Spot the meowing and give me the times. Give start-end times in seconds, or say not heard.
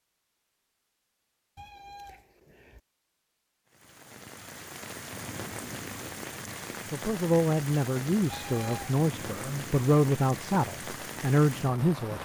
1.6-2.8, 8.3-8.9.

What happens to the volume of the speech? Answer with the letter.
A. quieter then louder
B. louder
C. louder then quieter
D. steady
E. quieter
D.